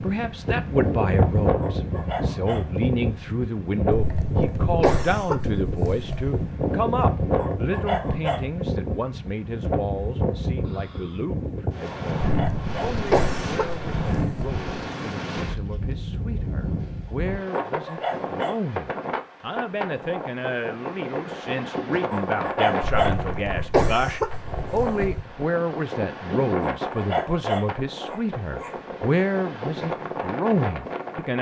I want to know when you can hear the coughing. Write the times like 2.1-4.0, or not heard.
3.9-6.5, 12.2-14.7, 22.8-25.2.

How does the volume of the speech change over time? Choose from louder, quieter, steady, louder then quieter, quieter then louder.
quieter then louder.